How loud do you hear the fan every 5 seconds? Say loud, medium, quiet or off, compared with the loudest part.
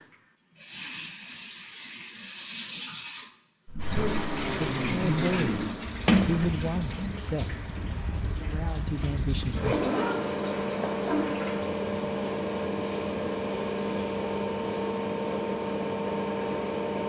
off, medium, loud, loud.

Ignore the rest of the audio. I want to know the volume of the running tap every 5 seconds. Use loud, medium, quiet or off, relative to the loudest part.
loud, medium, quiet, off.